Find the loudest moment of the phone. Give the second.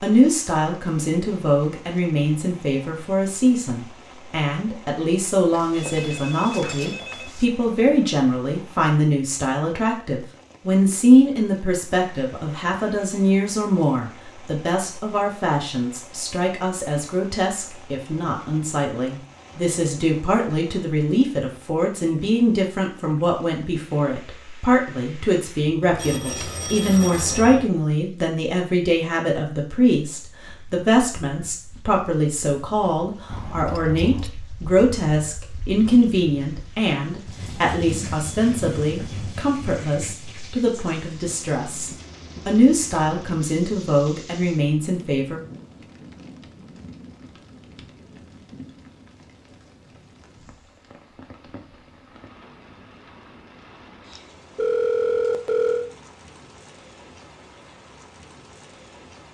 55 s.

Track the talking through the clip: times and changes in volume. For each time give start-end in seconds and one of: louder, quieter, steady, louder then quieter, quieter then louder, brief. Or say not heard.
0.0-45.4 steady.